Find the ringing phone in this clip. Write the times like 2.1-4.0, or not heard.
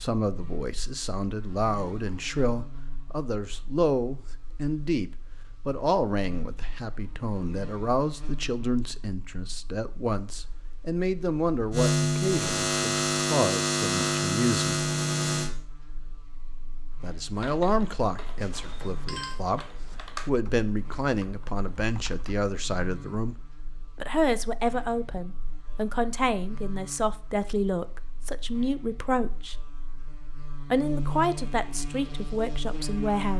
18.4-19.4.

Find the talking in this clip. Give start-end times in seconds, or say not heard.
0.0-14.8, 17.0-23.4, 23.9-29.6, 30.7-33.3.